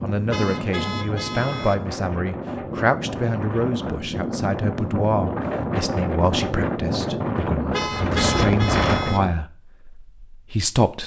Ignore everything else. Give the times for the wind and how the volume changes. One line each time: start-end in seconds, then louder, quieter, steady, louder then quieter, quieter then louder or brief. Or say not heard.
0.0-9.4 louder.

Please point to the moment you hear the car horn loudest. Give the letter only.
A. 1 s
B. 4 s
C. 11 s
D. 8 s
D.